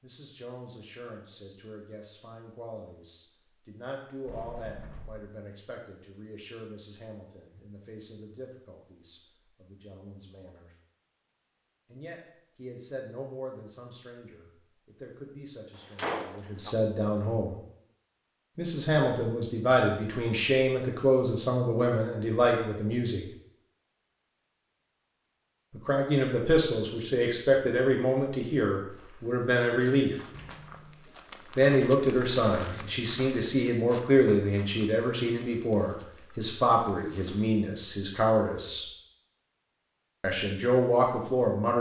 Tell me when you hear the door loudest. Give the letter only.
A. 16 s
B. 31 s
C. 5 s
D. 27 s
A.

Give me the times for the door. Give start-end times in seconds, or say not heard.
4.2-5.3, 15.8-16.8, 30.3-31.1.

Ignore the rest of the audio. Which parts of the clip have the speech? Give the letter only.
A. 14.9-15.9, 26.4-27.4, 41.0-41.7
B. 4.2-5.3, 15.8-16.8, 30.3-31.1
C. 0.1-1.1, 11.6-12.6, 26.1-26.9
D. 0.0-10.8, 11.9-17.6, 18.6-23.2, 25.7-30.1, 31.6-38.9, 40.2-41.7
D.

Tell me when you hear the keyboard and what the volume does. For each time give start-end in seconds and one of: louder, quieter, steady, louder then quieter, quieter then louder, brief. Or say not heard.
not heard.